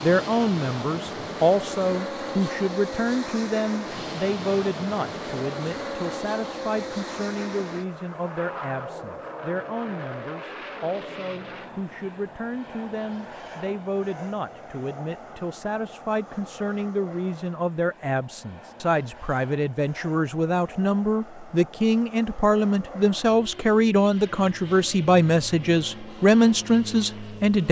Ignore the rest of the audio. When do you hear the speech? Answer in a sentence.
You can hear the speech from 0.0 to 27.6 s.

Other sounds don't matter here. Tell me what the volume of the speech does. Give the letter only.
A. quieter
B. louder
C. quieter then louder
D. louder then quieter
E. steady
C.